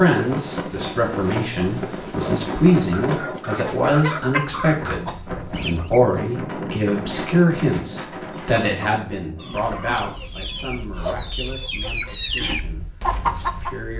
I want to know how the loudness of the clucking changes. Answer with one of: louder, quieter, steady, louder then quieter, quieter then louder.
quieter then louder.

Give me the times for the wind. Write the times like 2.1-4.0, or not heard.
0.0-13.8.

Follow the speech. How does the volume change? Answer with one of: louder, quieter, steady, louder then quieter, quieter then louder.
quieter.